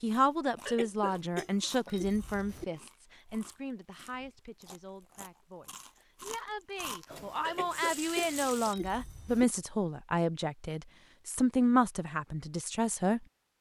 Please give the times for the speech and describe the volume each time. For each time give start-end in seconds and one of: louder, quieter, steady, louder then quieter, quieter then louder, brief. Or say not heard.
0.0-13.2 quieter then louder.